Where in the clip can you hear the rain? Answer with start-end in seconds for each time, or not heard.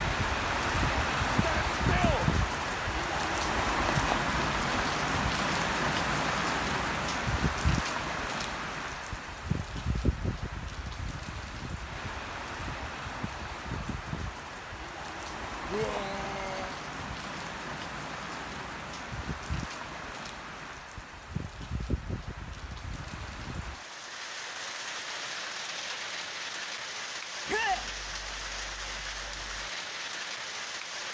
0.0-31.0.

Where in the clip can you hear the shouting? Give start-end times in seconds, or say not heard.
1.4-2.3, 15.7-16.8, 27.4-27.9.